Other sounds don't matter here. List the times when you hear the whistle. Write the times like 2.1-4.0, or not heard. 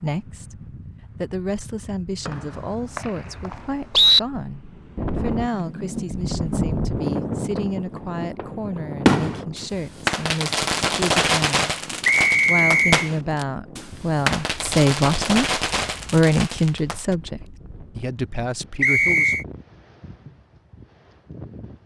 2.2-4.2, 12.0-13.1, 18.8-19.4.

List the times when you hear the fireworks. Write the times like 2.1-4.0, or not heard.
8.0-17.1.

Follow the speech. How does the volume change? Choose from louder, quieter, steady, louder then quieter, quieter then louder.
louder.